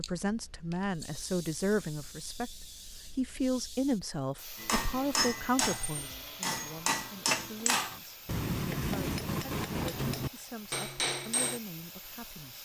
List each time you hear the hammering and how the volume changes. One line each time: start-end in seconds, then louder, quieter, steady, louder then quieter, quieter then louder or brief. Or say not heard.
4.5-11.6 steady.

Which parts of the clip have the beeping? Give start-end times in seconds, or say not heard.
not heard.